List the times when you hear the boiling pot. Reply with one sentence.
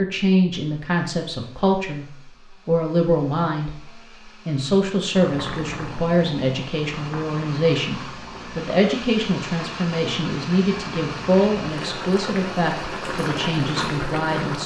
The boiling pot can be heard from 5.2 to 14.6 s.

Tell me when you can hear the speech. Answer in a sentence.
You can hear the speech from 0.0 to 3.8 s and from 4.5 to 14.6 s.